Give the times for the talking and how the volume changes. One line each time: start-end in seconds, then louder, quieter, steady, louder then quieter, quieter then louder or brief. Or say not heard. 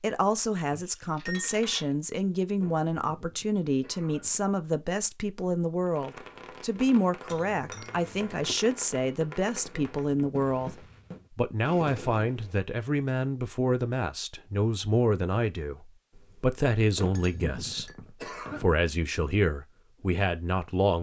0.0-20.9 steady.